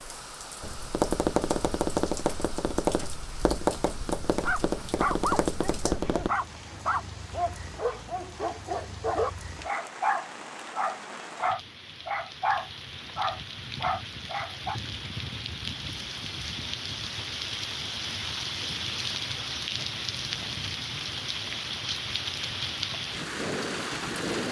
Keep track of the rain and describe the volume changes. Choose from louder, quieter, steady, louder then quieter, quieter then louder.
louder.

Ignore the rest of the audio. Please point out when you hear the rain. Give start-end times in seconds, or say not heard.
0.0-24.4.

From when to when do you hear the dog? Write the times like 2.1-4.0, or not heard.
4.4-14.8.